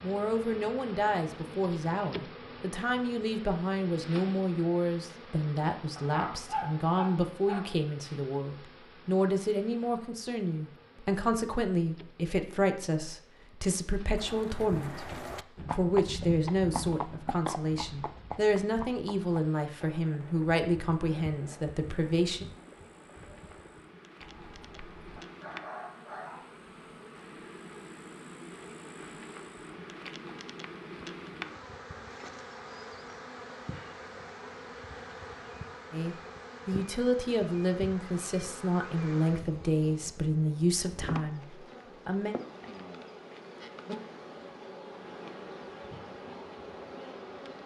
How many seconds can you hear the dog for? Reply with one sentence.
The dog can be heard for 3 seconds in total.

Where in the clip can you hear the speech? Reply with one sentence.
The speech can be heard from 0.0 to 22.4 s and from 35.9 to 42.4 s.